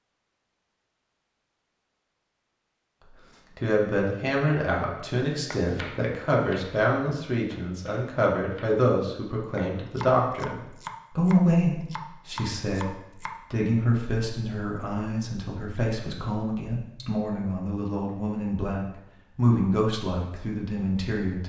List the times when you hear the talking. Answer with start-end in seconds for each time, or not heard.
3.1-21.4.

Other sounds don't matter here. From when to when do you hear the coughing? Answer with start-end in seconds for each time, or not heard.
not heard.